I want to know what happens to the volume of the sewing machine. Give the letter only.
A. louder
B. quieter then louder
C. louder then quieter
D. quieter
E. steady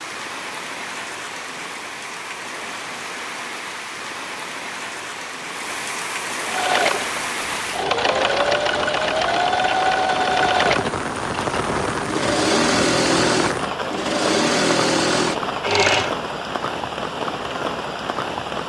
E.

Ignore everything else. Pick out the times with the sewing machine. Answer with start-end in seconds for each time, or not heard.
6.5-16.1.